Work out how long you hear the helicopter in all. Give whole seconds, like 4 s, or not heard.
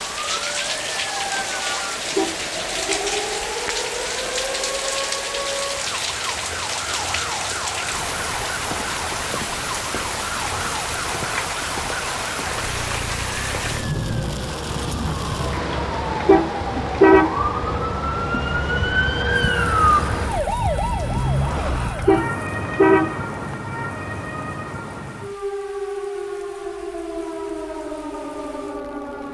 not heard.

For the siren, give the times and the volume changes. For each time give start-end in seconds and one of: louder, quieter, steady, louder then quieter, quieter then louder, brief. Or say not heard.
0.0-29.2 louder then quieter.